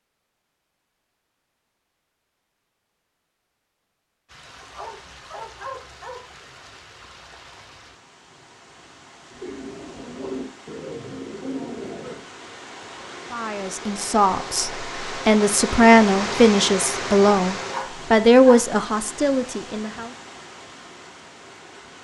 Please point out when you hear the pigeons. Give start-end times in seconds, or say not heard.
9.3-12.2.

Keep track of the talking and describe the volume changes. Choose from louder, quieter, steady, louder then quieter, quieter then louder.
louder then quieter.